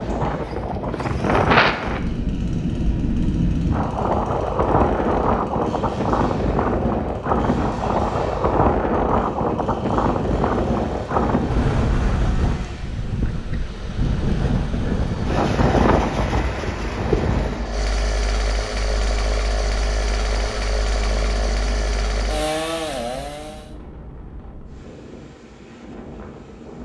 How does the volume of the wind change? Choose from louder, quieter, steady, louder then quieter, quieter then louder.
quieter.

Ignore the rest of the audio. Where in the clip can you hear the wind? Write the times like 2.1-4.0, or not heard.
0.0-26.8.